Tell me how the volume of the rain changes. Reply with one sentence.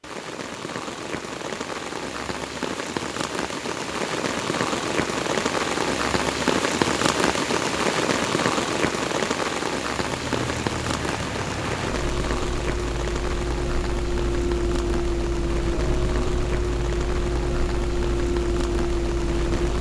The loudness of the rain goes up, then down.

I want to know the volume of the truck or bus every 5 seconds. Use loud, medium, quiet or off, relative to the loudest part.
off, off, loud, loud.